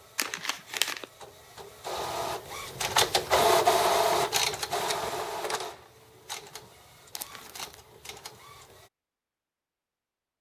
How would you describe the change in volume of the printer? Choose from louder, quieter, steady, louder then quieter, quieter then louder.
louder then quieter.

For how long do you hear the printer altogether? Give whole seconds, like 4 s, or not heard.
9 s.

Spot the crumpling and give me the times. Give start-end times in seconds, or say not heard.
0.1-1.1, 7.2-7.8.